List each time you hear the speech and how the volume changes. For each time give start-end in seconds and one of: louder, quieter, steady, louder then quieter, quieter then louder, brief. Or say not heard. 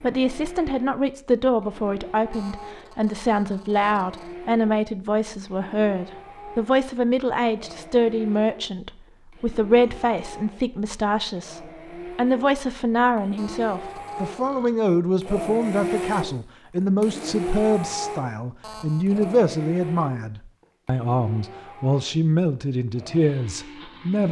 0.0-24.2 steady.